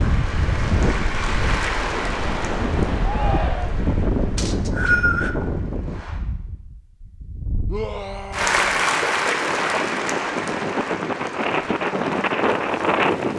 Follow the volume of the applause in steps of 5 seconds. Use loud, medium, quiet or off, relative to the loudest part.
medium, loud, medium.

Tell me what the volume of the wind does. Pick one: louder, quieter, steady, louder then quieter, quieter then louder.
quieter then louder.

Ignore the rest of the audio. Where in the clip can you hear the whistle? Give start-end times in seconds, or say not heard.
4.3-5.3.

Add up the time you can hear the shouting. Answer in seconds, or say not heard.
2 s.